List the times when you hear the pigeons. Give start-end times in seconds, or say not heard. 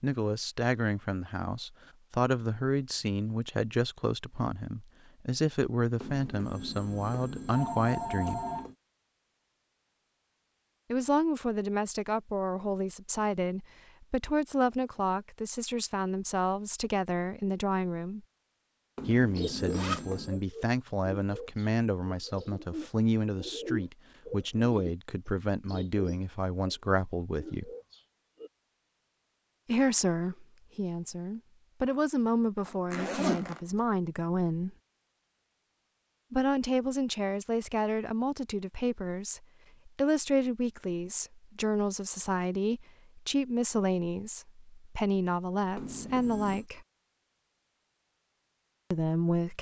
19.4-28.5.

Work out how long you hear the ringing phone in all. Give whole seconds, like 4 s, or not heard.
5 s.